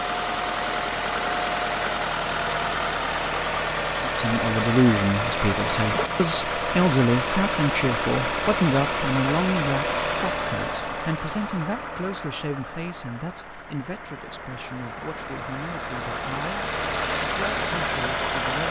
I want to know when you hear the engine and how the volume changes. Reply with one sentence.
The engine can be heard from 0.0 to 18.6 s, getting quieter then louder.